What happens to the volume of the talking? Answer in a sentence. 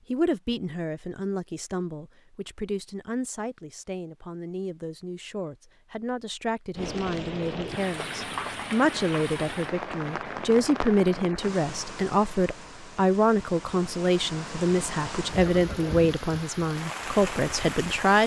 The loudness of the talking goes up.